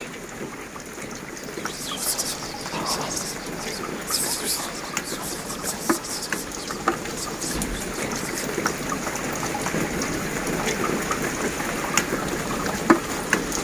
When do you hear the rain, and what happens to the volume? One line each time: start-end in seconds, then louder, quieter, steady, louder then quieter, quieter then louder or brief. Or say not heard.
0.0-13.5 louder.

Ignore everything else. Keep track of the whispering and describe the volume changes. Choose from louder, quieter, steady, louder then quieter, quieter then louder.
quieter.